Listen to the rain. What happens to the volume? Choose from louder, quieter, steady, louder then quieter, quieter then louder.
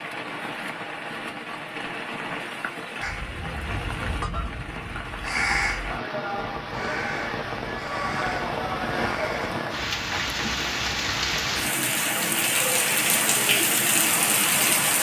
louder.